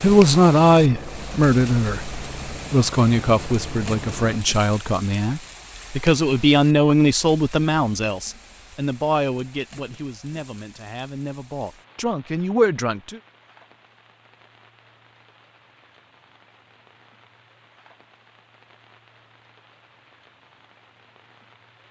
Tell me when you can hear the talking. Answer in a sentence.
You can hear the talking from 0.0 to 13.2 s.